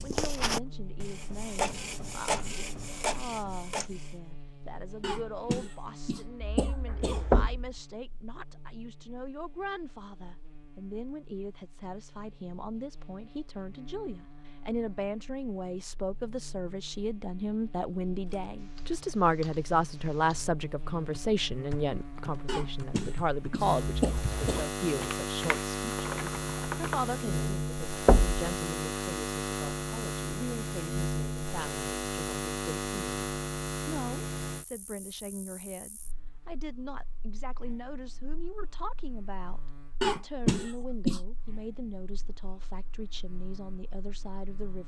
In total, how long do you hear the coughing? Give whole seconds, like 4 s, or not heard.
6 s.